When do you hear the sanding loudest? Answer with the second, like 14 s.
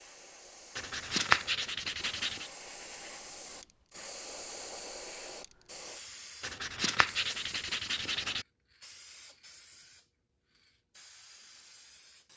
1 s.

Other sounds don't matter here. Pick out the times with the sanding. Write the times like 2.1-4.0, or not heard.
0.8-2.5, 6.4-8.4.